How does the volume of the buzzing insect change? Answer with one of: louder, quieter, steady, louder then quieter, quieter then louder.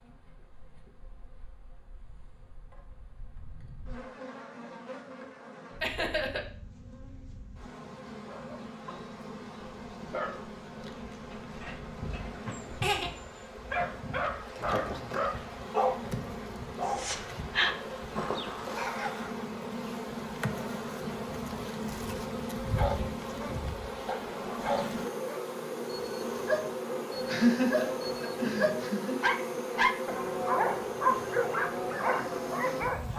louder.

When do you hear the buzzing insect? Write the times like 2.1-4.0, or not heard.
0.0-33.1.